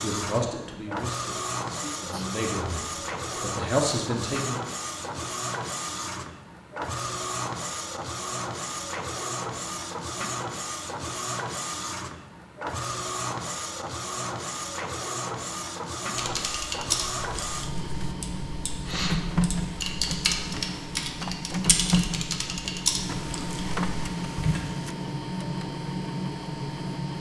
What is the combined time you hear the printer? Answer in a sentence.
You can hear the printer for 27 seconds altogether.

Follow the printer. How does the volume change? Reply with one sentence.
The loudness of the printer stays about the same.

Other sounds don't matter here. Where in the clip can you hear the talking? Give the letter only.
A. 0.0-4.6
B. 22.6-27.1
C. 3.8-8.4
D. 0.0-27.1
A.